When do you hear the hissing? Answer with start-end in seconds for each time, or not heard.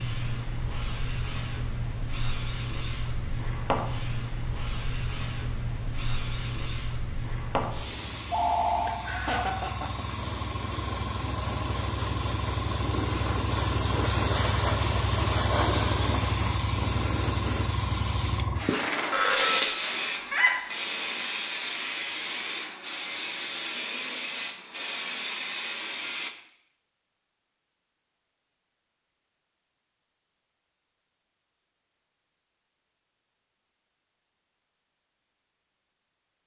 0.0-26.4.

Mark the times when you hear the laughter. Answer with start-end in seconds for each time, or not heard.
8.8-10.1.